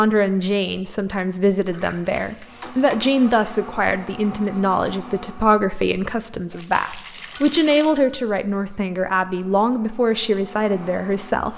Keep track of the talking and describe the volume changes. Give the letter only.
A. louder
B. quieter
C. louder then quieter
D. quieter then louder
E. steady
E.